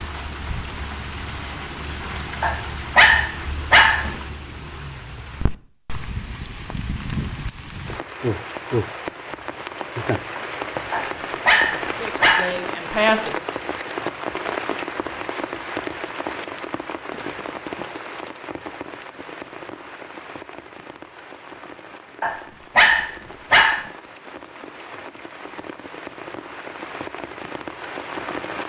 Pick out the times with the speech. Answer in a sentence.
You can hear the speech from 11.8 to 13.4 s.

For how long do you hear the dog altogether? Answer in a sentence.
You can hear the dog for 5 seconds altogether.